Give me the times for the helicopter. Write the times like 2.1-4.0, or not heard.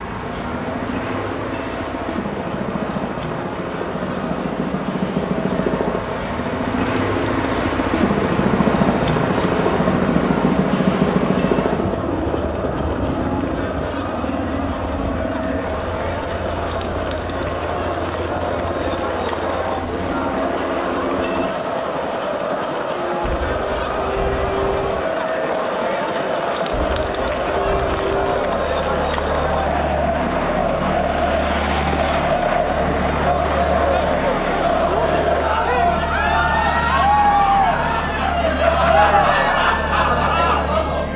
0.0-41.1.